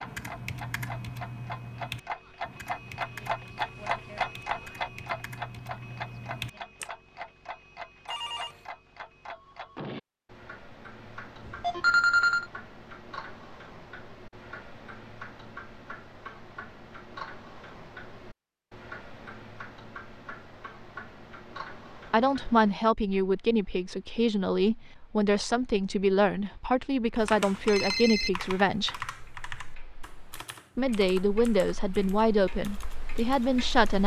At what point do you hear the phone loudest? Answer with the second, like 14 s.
12 s.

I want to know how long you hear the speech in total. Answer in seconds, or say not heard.
10 s.